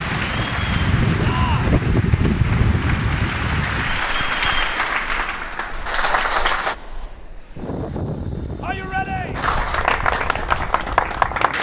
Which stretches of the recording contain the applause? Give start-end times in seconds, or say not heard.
0.0-6.8, 9.3-11.5.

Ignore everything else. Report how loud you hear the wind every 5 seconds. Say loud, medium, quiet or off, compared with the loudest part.
loud, medium, quiet.